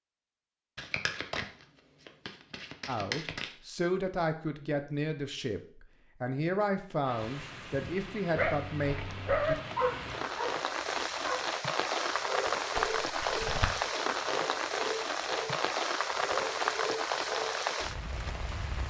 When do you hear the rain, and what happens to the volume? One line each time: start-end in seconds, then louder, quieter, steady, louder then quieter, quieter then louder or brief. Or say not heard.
7.0-18.8 louder.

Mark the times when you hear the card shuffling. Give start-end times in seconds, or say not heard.
0.8-3.5, 12.8-13.8.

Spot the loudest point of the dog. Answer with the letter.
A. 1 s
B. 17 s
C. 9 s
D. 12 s
C.